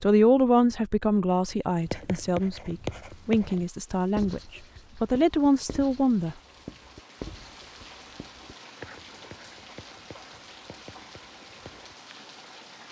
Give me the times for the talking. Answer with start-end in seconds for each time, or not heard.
0.0-6.3.